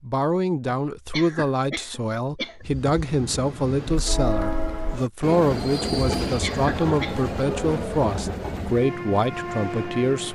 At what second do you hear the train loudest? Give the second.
6 s.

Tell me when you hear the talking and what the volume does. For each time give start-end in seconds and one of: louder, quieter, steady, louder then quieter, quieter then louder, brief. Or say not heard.
0.0-10.3 steady.